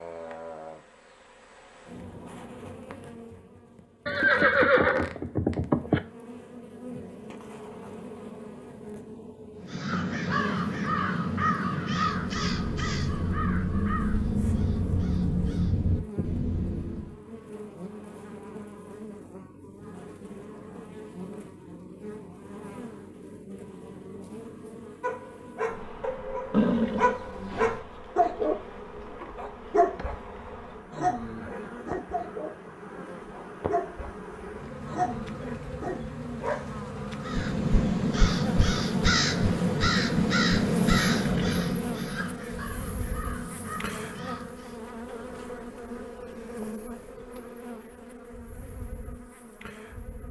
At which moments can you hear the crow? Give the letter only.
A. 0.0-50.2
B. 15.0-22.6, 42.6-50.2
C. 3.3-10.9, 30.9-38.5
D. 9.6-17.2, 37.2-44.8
D.